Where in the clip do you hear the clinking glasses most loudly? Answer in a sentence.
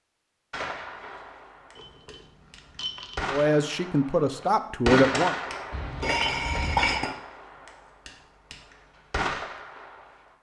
The loudest moment of the clinking glasses is at 7 seconds.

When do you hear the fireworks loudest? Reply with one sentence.
The volume of the fireworks peaks at 5 seconds.